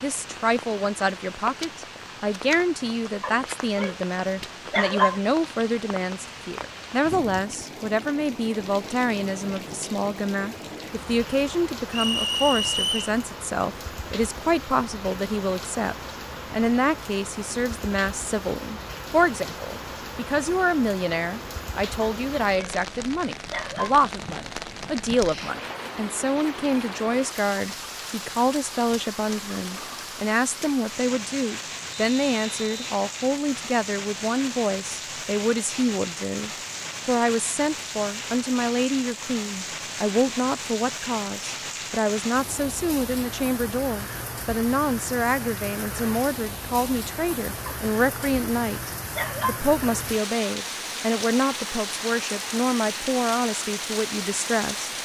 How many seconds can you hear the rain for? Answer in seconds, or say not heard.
55 s.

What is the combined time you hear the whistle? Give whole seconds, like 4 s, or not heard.
2 s.